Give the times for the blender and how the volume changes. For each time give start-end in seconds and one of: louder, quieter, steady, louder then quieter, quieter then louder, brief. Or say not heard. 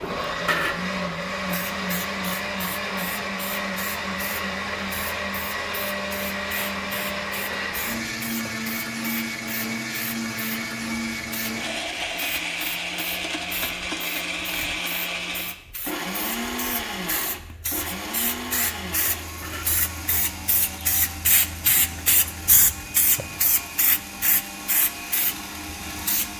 0.0-26.3 quieter.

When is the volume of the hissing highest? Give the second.
22 s.